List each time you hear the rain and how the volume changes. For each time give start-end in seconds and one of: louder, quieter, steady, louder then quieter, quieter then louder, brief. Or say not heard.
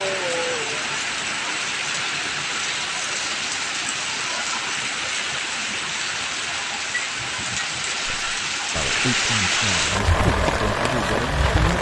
0.0-11.7 steady.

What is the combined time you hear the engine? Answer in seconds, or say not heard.
2 s.